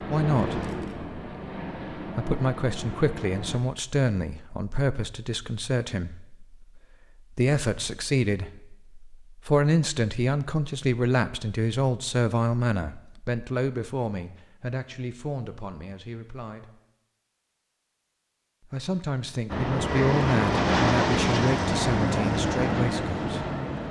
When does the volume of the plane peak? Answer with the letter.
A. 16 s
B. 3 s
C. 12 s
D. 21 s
D.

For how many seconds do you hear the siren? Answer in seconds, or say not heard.
not heard.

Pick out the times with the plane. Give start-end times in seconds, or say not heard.
0.0-3.6, 19.4-23.8.